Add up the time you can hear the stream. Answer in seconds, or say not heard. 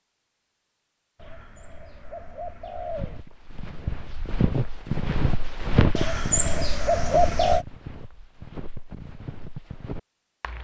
not heard.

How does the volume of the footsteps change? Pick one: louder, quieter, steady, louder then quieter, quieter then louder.
louder then quieter.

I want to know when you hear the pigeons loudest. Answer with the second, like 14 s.
7 s.